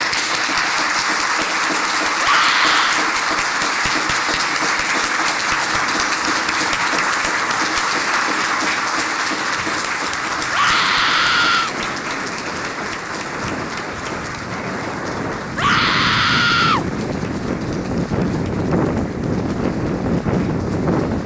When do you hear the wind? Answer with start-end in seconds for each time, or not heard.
5.3-21.2.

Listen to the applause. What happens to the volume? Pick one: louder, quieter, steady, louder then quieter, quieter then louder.
quieter.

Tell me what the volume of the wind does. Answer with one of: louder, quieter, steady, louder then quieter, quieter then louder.
louder.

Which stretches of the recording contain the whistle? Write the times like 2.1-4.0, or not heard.
not heard.